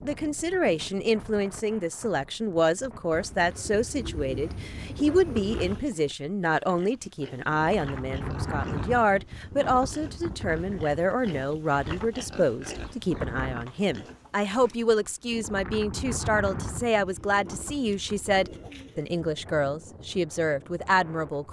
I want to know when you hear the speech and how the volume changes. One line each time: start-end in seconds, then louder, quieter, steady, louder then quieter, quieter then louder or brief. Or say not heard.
0.0-21.4 steady.